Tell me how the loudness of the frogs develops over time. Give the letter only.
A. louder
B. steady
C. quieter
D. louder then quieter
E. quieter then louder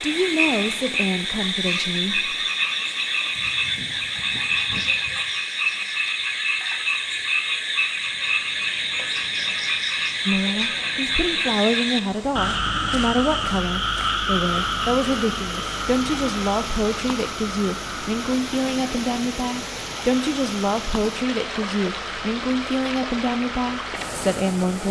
C.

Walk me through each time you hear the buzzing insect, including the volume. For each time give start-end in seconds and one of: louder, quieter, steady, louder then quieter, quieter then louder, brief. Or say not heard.
not heard.